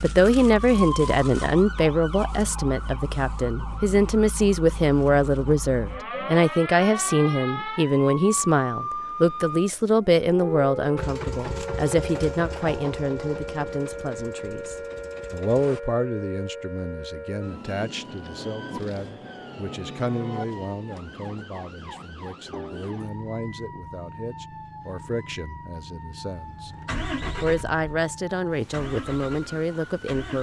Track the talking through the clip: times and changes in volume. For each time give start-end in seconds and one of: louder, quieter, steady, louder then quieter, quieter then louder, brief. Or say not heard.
0.0-26.7 quieter
27.4-30.3 brief.